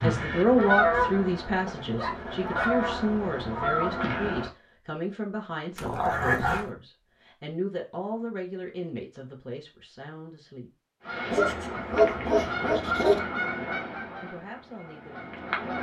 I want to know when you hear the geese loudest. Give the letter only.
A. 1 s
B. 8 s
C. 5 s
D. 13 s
A.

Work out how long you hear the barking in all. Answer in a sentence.
The barking can be heard for 4 seconds in total.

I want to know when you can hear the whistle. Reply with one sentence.
The whistle can't be heard in this clip.